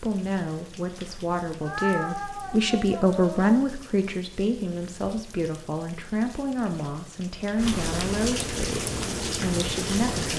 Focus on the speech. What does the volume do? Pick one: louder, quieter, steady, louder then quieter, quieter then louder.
louder then quieter.